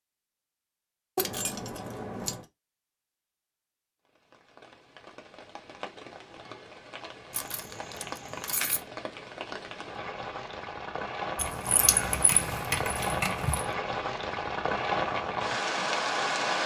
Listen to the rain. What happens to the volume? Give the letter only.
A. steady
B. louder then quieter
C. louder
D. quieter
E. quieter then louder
C.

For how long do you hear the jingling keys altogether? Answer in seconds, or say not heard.
5 s.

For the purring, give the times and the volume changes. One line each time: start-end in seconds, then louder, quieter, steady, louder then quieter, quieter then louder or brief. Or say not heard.
not heard.